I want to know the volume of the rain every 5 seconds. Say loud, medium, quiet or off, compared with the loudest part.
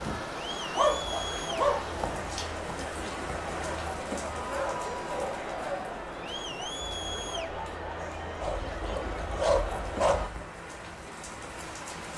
loud, medium, loud.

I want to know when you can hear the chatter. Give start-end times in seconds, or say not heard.
0.0-10.3.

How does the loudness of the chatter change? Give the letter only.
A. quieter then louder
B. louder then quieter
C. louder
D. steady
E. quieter
D.